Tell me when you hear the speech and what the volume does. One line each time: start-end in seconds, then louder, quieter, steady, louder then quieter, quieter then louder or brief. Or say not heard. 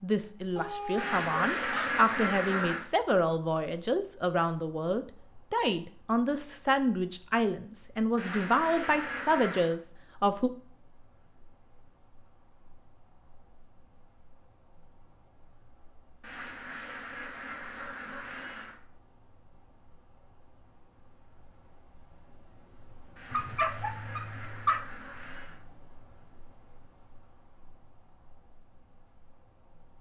0.0-10.5 steady.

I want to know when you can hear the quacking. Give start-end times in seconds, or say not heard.
0.9-2.9, 8.2-9.8, 16.2-18.8, 23.1-25.6.